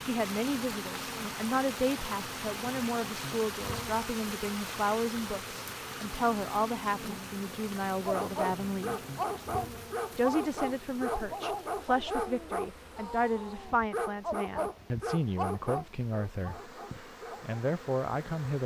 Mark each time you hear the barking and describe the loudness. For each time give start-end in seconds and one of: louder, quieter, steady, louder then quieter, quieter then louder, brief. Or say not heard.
8.1-17.6 steady.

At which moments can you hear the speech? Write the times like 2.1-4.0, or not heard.
0.0-9.0, 10.2-16.7, 17.4-18.6.